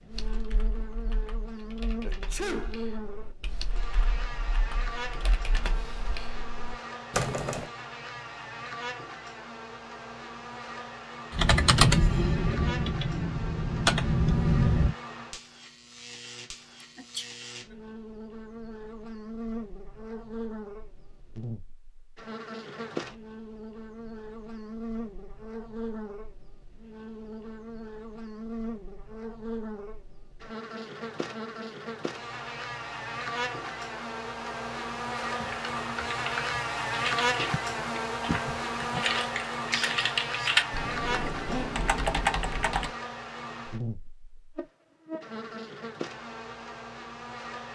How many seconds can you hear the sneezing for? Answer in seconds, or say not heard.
3 s.